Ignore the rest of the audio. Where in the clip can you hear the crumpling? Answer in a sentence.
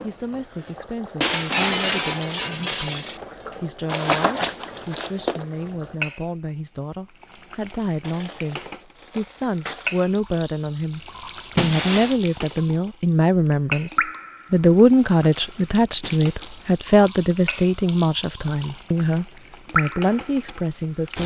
You can hear the crumpling from 3.9 to 5.5 s, from 8.0 to 10.1 s and from 14.8 to 16.7 s.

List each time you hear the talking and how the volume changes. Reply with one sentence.
The talking can be heard from 0.0 to 21.2 s, getting louder.